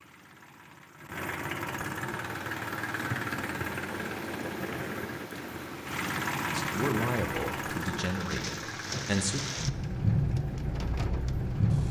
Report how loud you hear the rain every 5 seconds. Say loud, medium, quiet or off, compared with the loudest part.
quiet, medium, loud.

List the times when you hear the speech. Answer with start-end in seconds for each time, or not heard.
6.5-9.4.